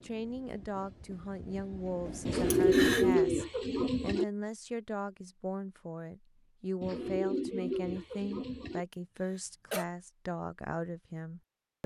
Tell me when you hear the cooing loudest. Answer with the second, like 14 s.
3 s.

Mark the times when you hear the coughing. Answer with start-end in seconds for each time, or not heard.
2.5-3.1, 9.3-9.8.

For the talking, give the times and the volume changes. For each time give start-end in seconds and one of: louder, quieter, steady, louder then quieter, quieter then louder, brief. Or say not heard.
0.0-11.8 steady.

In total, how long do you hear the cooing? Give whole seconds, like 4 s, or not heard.
4 s.